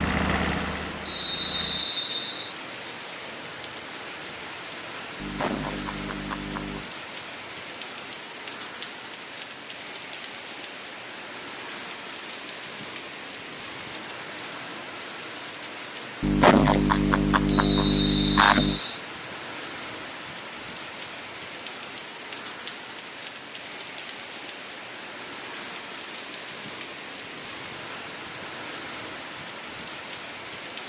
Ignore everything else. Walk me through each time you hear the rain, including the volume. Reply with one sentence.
The rain can be heard from 0.0 to 30.8 s, at a steady volume.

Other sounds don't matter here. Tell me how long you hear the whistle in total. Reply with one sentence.
The whistle can be heard for 3 seconds in total.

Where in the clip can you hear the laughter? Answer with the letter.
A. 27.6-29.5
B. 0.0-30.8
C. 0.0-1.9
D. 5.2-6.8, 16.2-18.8
D.